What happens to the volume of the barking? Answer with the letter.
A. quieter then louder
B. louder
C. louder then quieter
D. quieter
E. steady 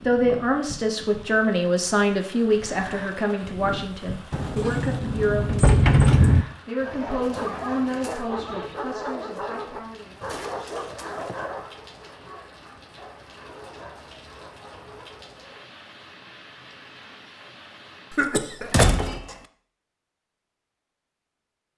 D.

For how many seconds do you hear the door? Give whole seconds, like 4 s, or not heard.
3 s.